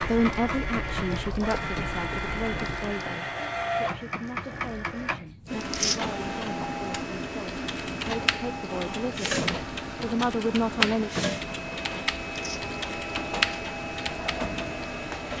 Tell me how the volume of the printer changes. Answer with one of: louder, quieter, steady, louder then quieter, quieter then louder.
steady.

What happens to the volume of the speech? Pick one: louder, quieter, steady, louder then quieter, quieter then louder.
quieter then louder.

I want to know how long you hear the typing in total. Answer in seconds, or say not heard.
10 s.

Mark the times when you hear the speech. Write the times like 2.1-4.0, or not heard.
0.0-11.1.